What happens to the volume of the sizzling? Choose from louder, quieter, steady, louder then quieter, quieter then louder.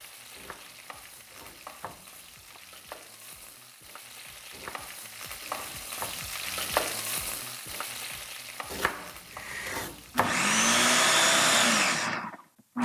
louder then quieter.